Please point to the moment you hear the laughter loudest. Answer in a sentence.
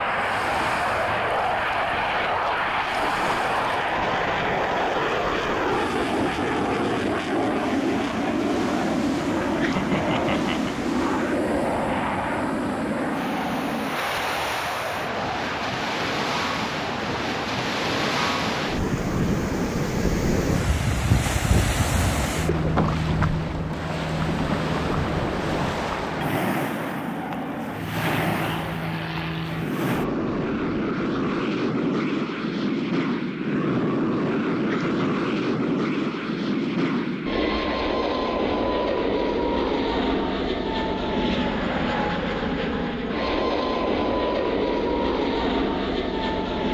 The loudest moment of the laughter is at 10 seconds.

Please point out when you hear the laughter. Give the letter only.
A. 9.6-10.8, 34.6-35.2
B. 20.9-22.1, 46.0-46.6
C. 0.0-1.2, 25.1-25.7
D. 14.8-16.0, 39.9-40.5
A.